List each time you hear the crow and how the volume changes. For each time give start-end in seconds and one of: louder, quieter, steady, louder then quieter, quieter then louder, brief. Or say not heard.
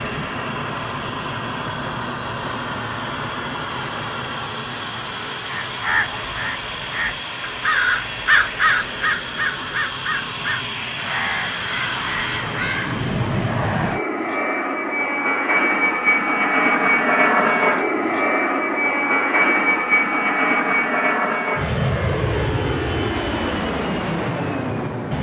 5.5-13.0 louder then quieter.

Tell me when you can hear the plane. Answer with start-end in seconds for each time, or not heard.
0.0-25.1.